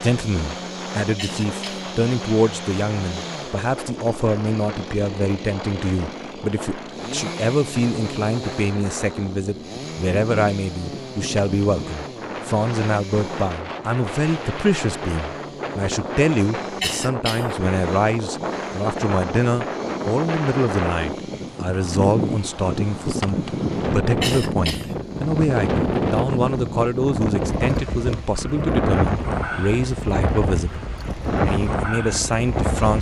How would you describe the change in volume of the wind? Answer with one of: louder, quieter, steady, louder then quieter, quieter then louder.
louder.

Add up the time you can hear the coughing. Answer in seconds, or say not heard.
2 s.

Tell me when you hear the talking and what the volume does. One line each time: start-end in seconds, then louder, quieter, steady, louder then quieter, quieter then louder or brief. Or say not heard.
0.0-32.9 steady.